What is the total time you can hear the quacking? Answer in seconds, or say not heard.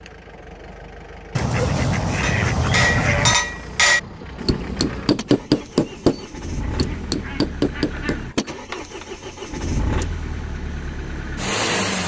4 s.